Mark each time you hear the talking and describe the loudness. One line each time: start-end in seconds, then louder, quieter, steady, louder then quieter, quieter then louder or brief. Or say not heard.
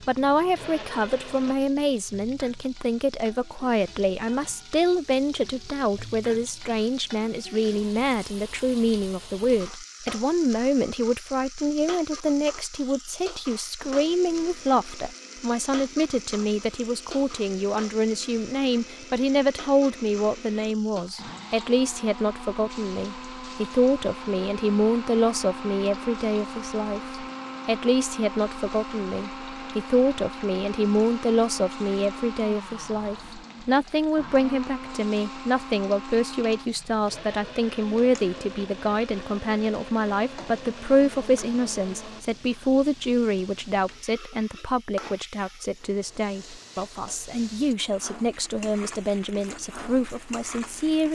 0.0-51.1 steady.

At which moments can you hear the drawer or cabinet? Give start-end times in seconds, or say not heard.
not heard.